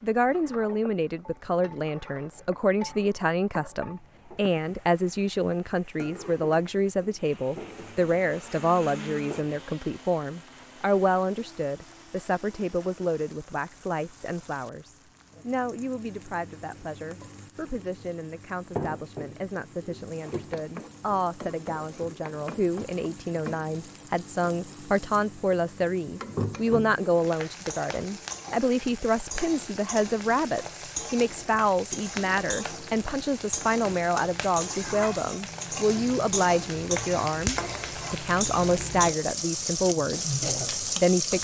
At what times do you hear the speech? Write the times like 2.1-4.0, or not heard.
0.0-41.4.